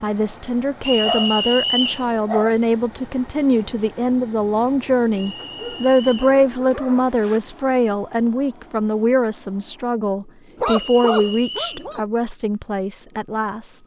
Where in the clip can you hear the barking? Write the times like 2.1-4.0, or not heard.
1.0-2.5, 5.3-7.4, 10.6-12.0.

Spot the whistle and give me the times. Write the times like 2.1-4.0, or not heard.
0.8-2.0, 5.2-6.3, 10.7-11.8.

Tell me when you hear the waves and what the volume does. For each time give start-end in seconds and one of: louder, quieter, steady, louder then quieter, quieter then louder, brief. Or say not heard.
not heard.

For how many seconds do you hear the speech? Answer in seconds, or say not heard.
14 s.